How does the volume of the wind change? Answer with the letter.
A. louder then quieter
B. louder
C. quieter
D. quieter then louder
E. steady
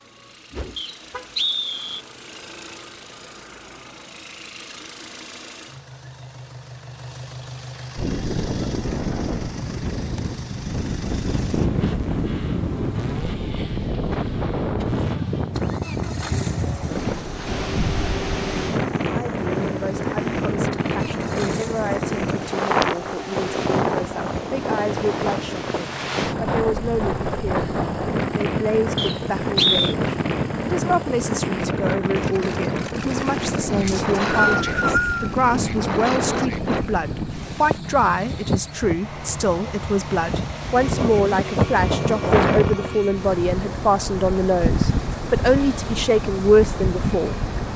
E.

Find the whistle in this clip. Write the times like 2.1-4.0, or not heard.
0.8-2.0, 28.9-29.9, 33.9-35.3.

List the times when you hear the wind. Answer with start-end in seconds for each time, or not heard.
8.0-47.7.